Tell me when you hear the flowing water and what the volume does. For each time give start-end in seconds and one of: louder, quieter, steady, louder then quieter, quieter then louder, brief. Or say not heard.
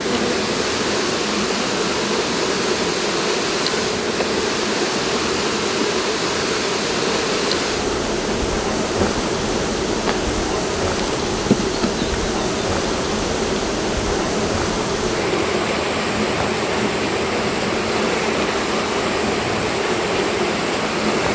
0.0-21.3 steady.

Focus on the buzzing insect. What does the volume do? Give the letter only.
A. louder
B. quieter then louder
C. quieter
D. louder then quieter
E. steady
E.